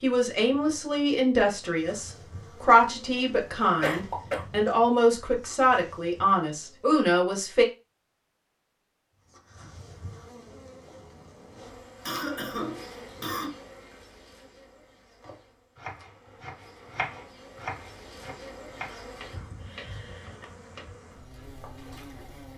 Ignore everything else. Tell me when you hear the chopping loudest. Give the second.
17 s.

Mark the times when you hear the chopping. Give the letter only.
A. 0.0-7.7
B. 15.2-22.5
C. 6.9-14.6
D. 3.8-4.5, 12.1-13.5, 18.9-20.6
B.